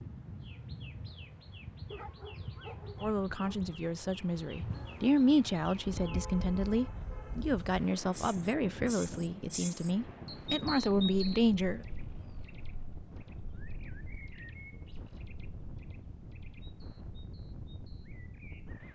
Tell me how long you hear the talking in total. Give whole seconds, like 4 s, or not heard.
9 s.